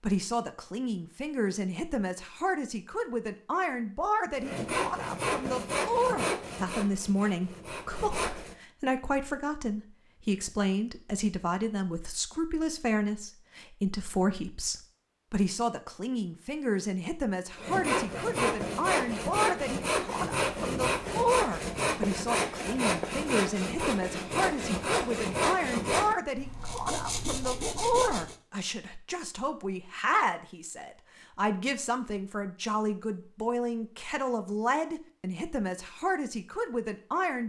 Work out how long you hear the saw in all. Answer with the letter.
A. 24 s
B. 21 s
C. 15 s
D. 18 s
C.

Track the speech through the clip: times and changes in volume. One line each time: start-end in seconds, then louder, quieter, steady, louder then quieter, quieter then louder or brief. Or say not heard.
0.0-37.4 steady.